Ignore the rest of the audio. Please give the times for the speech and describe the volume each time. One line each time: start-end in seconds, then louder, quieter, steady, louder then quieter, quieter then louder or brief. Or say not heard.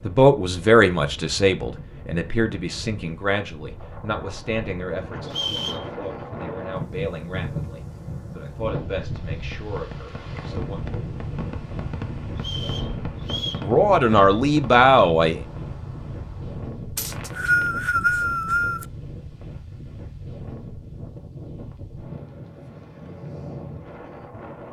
0.0-10.8 quieter
13.6-15.4 brief.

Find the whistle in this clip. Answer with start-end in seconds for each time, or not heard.
5.2-5.8, 12.4-13.7, 16.9-18.9.